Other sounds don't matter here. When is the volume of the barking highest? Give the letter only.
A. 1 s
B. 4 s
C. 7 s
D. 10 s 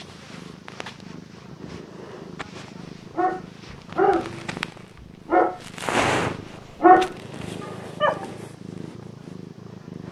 C.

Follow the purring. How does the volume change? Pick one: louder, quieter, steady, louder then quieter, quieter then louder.
louder then quieter.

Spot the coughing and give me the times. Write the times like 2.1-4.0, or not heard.
not heard.